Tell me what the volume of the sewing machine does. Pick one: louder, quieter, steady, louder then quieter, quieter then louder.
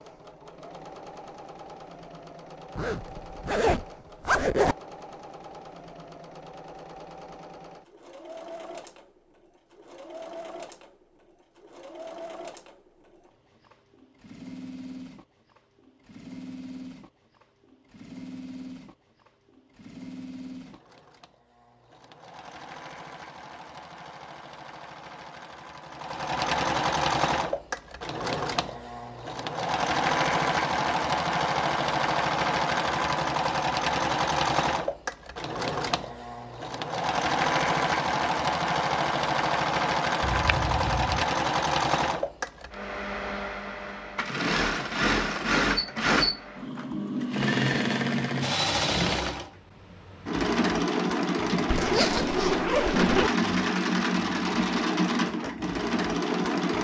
louder.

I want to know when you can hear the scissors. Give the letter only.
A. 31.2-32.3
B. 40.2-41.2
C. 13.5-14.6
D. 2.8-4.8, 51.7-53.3
B.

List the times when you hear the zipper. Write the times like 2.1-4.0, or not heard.
2.8-4.8, 51.7-53.3.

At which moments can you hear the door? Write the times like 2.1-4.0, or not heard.
not heard.